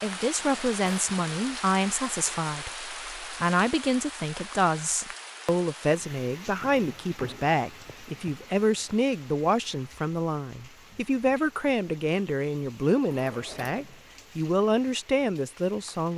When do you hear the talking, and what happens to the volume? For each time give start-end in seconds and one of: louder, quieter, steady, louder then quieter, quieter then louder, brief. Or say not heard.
0.0-16.1 steady.